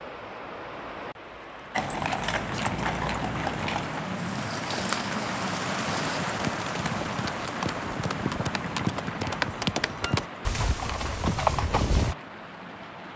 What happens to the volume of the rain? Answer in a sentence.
The volume of the rain goes up, then down.